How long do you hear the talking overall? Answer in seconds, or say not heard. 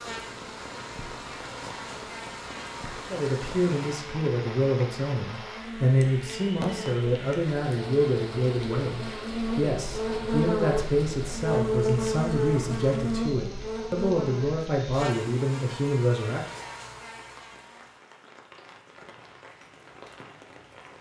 13 s.